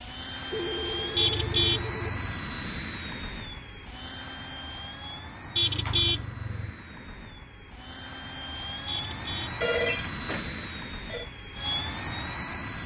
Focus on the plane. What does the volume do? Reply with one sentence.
The volume of the plane goes down, then up.